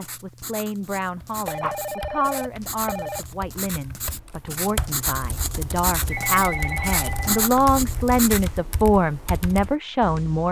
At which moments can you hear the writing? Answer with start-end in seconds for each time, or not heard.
0.0-8.5.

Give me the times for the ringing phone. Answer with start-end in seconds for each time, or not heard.
1.4-3.2, 6.0-7.7.